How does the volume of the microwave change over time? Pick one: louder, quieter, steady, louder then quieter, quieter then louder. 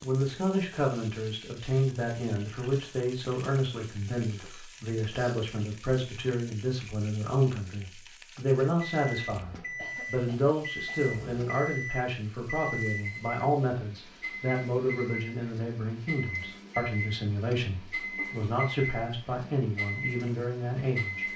steady.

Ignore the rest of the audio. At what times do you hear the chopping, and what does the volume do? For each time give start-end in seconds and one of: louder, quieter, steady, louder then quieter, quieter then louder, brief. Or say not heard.
not heard.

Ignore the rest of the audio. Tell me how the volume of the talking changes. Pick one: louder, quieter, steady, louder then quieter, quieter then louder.
steady.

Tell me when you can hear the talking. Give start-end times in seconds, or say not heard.
0.0-21.3.